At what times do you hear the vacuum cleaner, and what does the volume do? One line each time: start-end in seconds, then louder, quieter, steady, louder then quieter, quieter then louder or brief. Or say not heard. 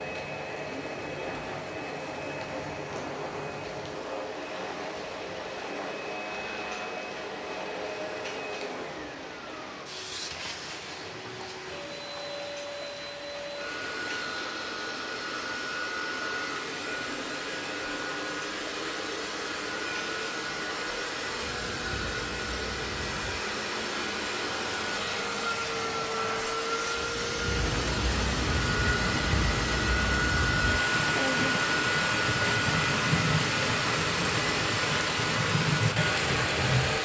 0.0-37.0 louder.